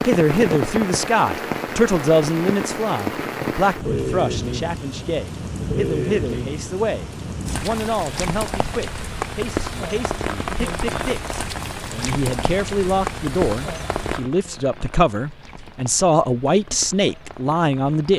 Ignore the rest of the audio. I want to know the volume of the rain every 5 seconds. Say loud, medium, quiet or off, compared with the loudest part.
loud, loud, loud, quiet.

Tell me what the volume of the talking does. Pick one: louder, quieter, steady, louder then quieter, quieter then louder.
quieter then louder.